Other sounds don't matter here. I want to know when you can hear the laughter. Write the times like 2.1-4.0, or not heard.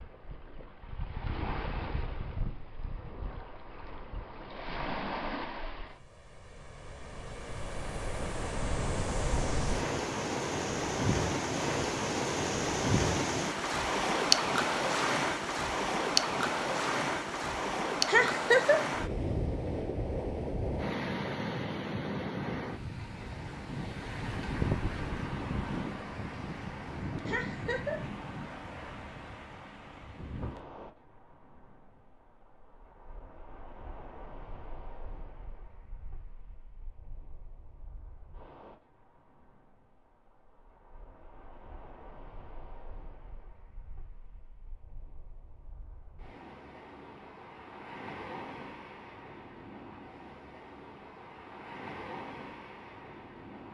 18.1-18.9, 27.2-28.0.